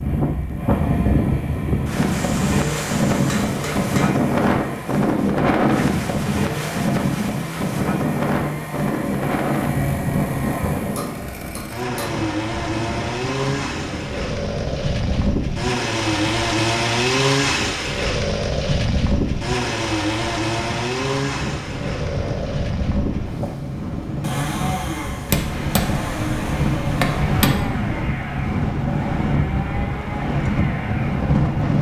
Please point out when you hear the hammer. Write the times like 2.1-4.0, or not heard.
2.1-4.1, 10.9-12.2, 25.2-27.6.